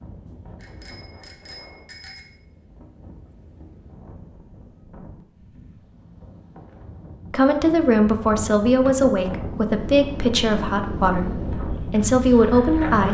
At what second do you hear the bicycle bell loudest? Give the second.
2 s.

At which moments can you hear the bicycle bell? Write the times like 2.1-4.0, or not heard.
0.6-2.2.